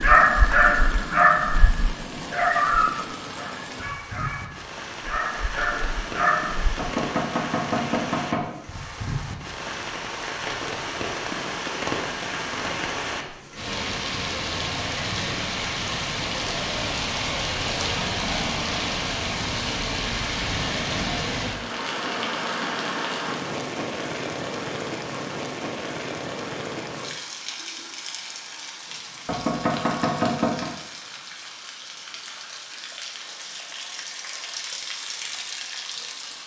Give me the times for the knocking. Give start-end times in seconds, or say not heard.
6.8-8.6, 29.2-30.6.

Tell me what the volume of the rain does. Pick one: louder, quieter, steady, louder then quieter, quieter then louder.
louder then quieter.